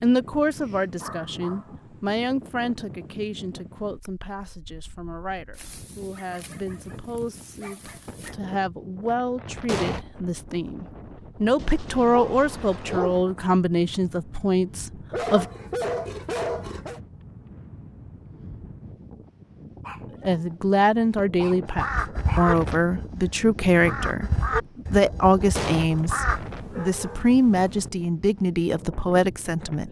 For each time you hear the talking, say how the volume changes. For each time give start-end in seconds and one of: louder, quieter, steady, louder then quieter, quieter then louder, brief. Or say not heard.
0.0-15.4 quieter then louder
20.2-29.8 steady.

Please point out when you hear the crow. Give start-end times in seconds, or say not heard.
21.8-26.4.